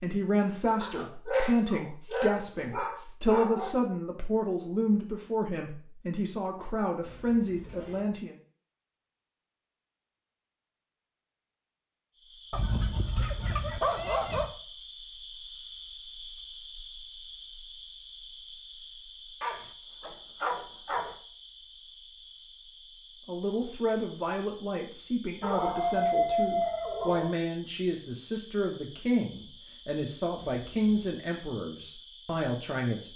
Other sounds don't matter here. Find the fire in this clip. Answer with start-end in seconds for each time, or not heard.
not heard.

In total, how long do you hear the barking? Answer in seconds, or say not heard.
9 s.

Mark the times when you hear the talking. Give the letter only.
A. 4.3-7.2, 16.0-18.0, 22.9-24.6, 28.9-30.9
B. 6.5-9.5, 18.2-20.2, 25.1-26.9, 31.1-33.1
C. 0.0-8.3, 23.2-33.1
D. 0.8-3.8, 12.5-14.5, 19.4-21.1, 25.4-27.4
C.